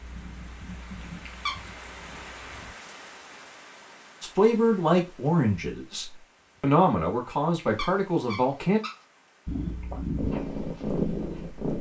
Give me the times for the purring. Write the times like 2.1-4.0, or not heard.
0.0-2.8, 9.4-11.7.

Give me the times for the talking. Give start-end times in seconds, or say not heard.
4.2-8.8.